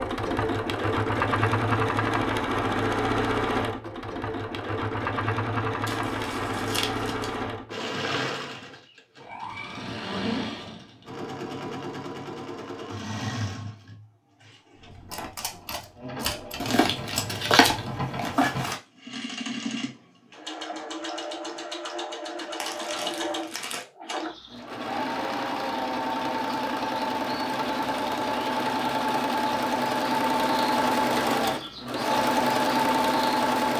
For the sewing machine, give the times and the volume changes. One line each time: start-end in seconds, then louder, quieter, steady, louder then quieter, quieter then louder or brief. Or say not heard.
0.0-33.7 quieter then louder.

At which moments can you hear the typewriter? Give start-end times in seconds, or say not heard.
14.9-17.9.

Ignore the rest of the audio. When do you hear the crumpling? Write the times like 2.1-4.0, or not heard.
5.8-7.3, 16.6-18.8, 22.6-23.9.